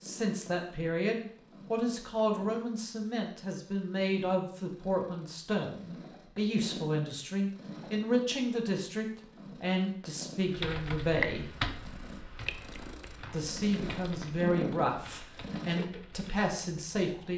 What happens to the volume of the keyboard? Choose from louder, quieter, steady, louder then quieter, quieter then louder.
quieter.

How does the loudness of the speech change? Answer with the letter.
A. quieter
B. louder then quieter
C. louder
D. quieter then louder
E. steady
E.